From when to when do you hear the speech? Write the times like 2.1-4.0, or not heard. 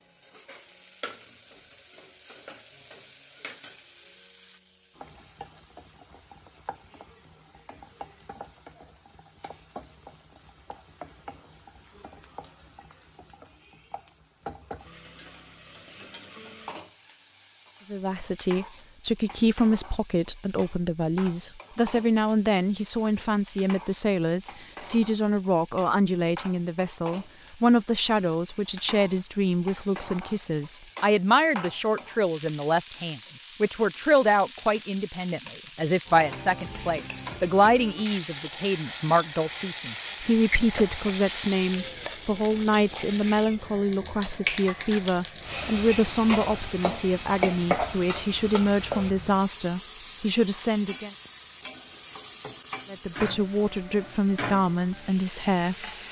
17.9-51.1, 52.9-55.8.